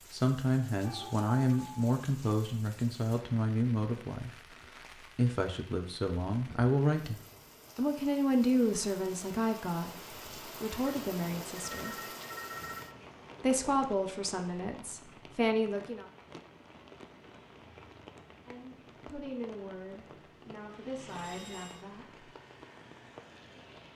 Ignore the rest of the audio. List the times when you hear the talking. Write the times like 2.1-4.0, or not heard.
0.1-7.2, 7.8-11.9, 13.4-16.1, 18.4-22.2.